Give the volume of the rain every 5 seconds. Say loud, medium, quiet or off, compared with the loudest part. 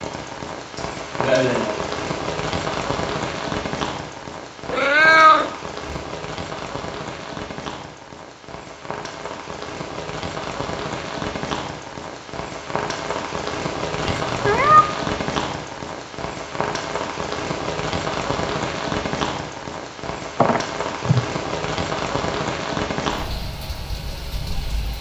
loud, medium, loud, loud, loud.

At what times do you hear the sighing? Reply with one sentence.
You can hear the sighing from 0.8 to 1.9 s.